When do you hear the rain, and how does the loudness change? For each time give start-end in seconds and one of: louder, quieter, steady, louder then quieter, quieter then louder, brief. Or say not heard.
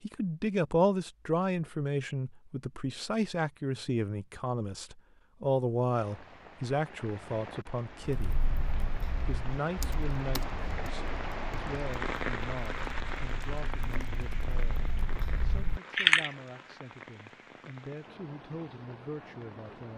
5.8-19.9 louder then quieter.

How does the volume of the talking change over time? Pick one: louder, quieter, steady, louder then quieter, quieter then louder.
quieter.